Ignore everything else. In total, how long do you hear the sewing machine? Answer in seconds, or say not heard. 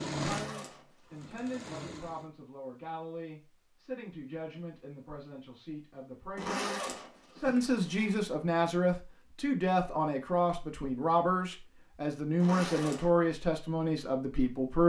2 s.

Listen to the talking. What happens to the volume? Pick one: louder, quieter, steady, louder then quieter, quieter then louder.
louder.